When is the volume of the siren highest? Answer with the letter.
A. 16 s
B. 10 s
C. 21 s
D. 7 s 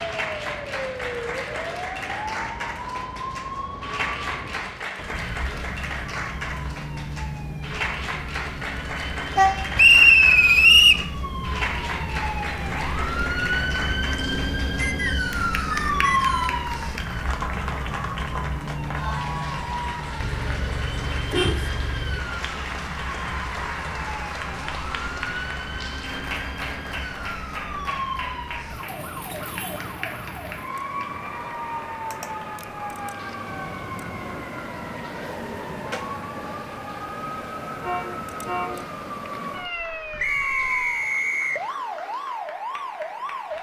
A.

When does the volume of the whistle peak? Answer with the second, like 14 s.
10 s.